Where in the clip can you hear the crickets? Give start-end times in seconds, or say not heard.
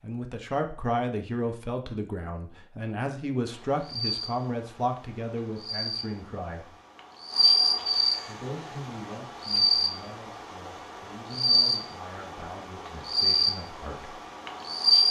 3.5-15.0.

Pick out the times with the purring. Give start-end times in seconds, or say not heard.
not heard.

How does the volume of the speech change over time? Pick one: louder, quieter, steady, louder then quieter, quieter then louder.
quieter.